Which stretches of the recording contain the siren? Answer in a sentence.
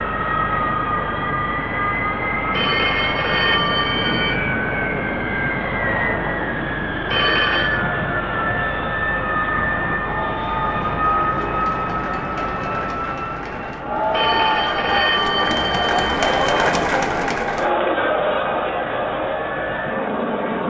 You can't hear the siren here.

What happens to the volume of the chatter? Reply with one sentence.
The loudness of the chatter goes up.